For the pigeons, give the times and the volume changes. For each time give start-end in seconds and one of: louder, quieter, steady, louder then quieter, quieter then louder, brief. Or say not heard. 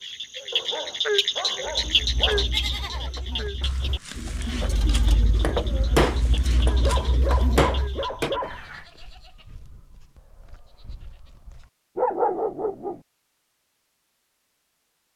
1.6-8.1 louder.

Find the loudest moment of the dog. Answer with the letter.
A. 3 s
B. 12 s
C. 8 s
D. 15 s
B.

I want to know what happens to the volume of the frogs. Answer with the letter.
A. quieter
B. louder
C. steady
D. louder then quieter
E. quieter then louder
A.